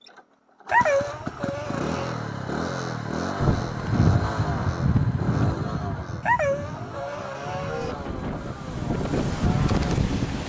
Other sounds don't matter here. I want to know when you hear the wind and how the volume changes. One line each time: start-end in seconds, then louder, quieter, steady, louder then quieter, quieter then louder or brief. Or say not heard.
3.4-10.4 quieter then louder.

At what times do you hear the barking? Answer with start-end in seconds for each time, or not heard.
0.7-2.1, 6.2-8.0.